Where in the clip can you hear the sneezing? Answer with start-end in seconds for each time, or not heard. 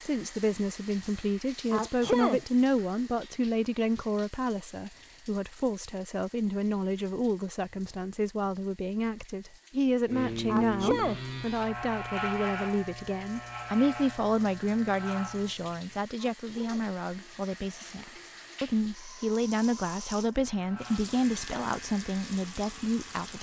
1.7-2.5, 10.4-11.2, 16.1-16.9.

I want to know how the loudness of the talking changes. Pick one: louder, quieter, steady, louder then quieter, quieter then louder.
steady.